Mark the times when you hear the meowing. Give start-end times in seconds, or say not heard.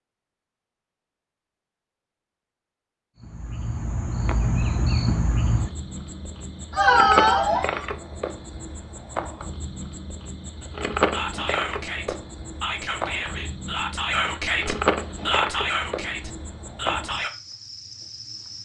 6.7-7.8.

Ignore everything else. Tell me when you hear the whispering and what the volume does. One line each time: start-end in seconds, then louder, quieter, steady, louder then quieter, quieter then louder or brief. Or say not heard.
11.1-17.3 louder then quieter.